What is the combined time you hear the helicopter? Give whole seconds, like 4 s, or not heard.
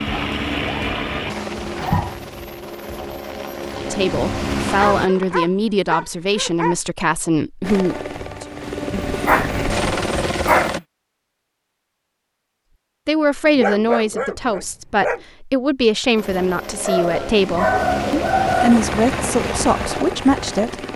13 s.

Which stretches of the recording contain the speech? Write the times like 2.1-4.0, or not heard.
3.9-8.4, 13.1-20.9.